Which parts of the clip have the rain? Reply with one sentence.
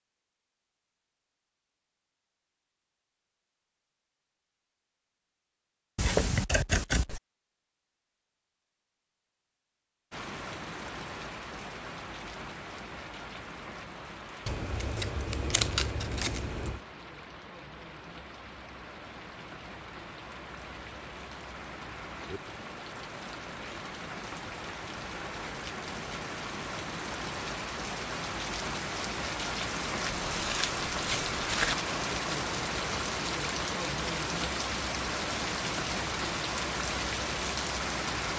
The rain can be heard from 10.1 to 38.3 s.